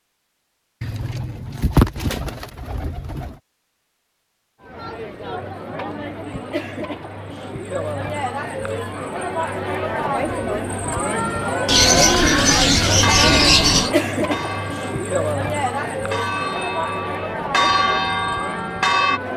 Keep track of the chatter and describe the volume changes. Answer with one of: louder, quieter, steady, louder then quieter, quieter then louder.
louder then quieter.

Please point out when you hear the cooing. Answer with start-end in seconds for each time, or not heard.
0.8-3.4, 11.7-13.9.